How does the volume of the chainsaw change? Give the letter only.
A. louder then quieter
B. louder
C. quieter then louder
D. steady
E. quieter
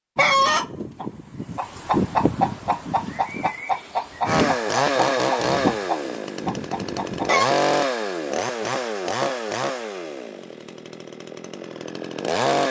E.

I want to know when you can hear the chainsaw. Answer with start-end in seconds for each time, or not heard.
4.2-12.6.